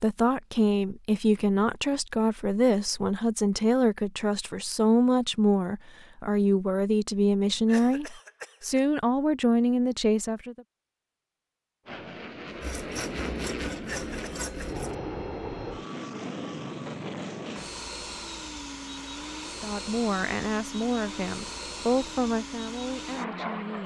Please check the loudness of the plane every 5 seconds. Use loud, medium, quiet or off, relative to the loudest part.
off, off, loud, loud, loud.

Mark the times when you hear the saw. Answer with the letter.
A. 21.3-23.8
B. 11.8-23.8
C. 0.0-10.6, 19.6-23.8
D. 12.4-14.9
D.